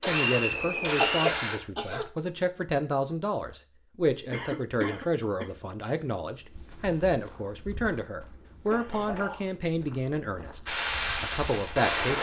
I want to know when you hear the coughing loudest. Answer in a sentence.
The volume of the coughing peaks at 1 second.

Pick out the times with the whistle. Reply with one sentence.
The whistle can be heard from 0.1 to 1.4 s.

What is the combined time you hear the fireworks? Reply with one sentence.
You can hear the fireworks for 3 seconds altogether.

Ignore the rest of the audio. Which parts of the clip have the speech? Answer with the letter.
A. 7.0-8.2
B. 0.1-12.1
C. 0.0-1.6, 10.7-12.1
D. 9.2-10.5
B.